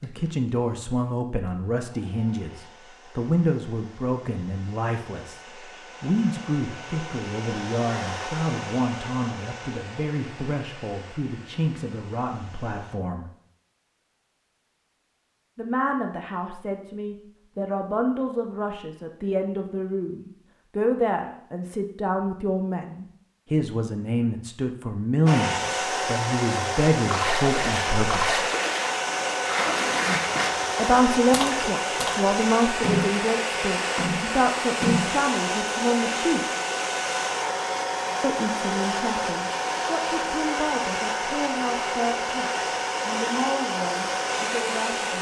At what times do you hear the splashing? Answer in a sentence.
The splashing can be heard from 27.1 to 35.2 s.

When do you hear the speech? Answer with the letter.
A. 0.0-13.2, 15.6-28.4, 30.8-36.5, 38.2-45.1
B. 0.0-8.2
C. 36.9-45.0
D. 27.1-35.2
A.